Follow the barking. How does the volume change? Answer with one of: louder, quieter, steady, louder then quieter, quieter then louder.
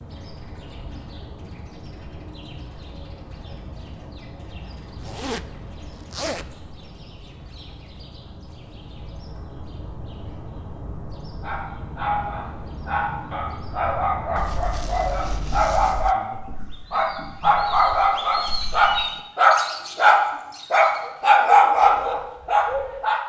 louder.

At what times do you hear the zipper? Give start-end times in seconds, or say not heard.
5.0-5.5, 6.1-6.5, 14.3-16.1.